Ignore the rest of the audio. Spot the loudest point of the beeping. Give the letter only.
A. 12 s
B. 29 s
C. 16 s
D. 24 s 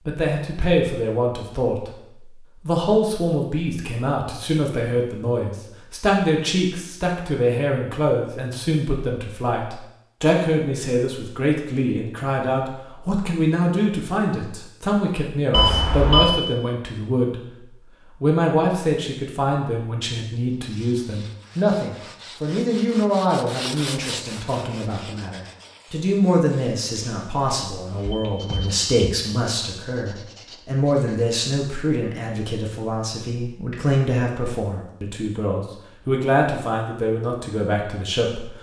C.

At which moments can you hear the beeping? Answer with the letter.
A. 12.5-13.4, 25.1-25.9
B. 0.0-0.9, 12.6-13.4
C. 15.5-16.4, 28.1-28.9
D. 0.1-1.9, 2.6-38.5
C.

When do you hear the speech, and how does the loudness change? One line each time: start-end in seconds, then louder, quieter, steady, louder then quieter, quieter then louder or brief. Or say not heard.
0.1-1.9 brief
2.6-38.5 steady.